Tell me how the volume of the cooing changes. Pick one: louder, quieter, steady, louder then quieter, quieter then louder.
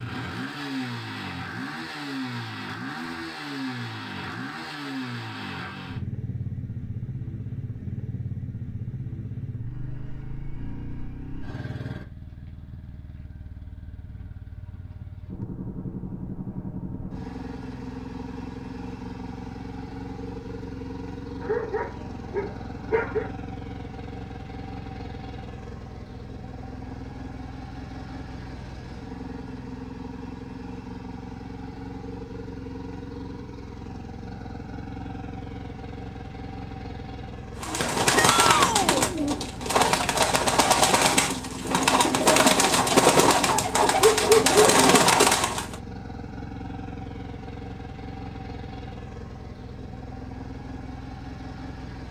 steady.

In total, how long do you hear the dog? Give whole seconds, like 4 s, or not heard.
4 s.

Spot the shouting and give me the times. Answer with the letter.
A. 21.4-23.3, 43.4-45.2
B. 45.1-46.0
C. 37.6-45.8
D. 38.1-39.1
D.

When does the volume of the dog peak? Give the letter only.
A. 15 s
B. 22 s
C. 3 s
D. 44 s
D.